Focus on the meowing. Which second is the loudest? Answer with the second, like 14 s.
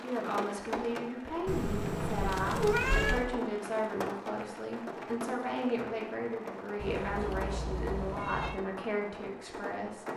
3 s.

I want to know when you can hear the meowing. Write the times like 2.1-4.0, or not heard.
1.4-3.2, 6.8-8.6.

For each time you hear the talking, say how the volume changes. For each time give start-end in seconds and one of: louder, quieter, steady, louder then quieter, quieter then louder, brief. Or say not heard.
0.0-10.1 steady.